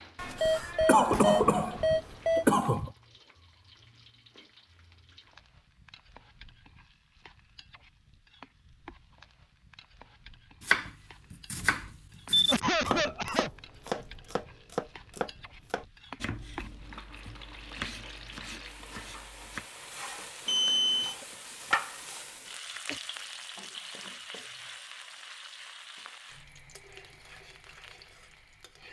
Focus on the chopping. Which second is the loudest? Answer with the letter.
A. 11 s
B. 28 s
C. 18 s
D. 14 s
A.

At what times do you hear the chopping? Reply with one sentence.
You can hear the chopping from 10.6 to 19.6 s.